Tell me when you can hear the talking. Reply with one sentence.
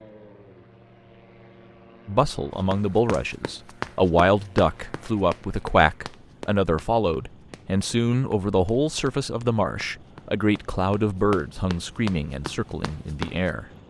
The talking can be heard from 2.0 to 13.7 s.